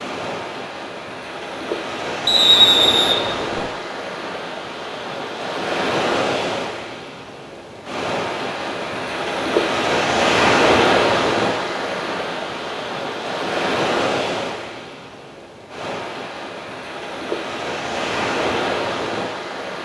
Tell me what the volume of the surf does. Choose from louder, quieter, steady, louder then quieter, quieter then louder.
louder then quieter.